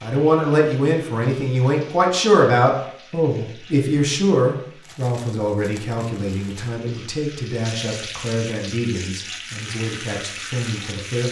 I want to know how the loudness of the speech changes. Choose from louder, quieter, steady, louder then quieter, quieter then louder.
quieter.